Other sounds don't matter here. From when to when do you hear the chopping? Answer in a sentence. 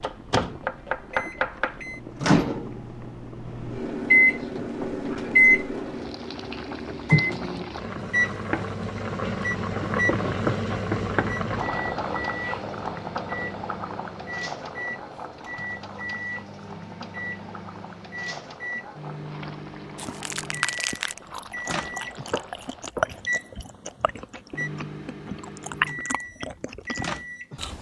You can hear the chopping from 0.0 to 1.8 s and from 22.3 to 23.1 s.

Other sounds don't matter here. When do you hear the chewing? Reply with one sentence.
You can hear the chewing from 19.9 to 27.7 s.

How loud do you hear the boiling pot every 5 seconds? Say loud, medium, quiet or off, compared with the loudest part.
quiet, loud, loud, quiet, quiet, off.